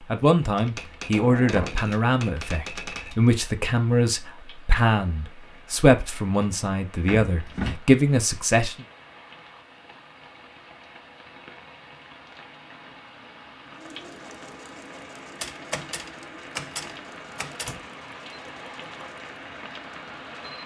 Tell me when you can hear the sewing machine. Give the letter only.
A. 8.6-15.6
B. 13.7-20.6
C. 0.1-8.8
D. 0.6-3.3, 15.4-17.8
B.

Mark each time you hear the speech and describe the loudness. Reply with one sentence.
The speech can be heard from 0.1 to 8.8 s, at a steady volume.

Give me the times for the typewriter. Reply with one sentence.
The typewriter can be heard from 0.6 to 3.3 s and from 15.4 to 17.8 s.